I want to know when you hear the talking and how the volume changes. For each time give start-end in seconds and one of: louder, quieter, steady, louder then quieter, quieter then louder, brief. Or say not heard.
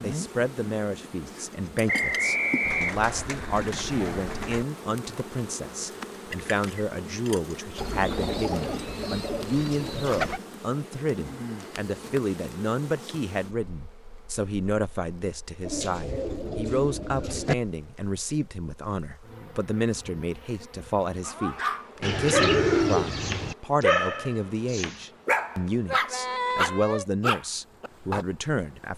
0.0-28.9 steady.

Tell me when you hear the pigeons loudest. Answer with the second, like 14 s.
23 s.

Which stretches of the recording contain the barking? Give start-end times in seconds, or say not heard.
21.2-28.2.